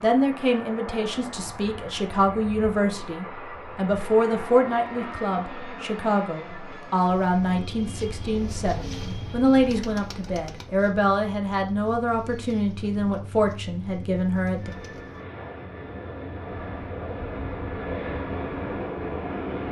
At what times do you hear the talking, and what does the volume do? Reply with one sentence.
You can hear the talking from 0.0 to 14.7 s, at a steady volume.